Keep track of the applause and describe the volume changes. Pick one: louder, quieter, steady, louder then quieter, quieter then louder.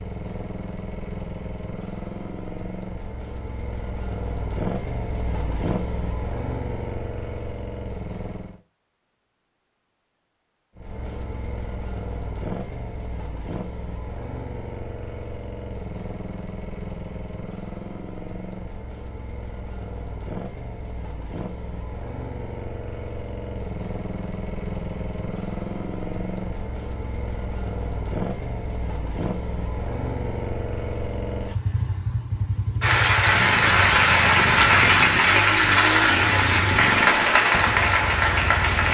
steady.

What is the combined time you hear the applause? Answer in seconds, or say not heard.
6 s.